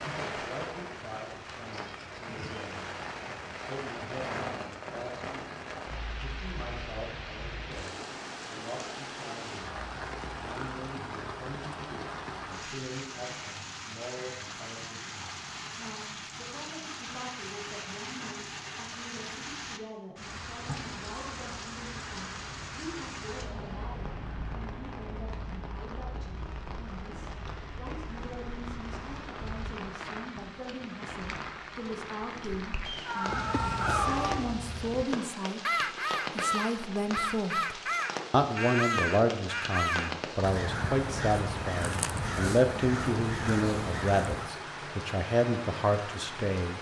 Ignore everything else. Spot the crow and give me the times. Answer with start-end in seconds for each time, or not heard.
33.2-44.5.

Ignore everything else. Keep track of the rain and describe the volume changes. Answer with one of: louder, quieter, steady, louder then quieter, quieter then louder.
steady.